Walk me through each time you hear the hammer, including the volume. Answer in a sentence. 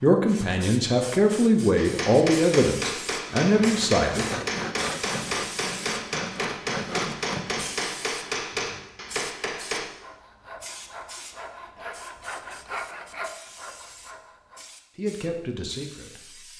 The hammer can be heard from 1.8 to 9.8 s, at a steady volume.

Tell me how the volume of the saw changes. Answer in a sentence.
The loudness of the saw goes down.